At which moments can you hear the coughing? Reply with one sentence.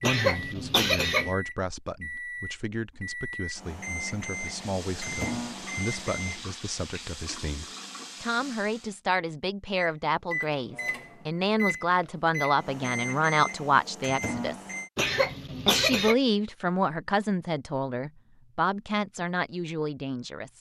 You can hear the coughing from 0.0 to 1.4 s and from 14.9 to 16.1 s.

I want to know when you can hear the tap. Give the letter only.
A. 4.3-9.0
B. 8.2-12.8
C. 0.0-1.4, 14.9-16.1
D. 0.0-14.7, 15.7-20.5
A.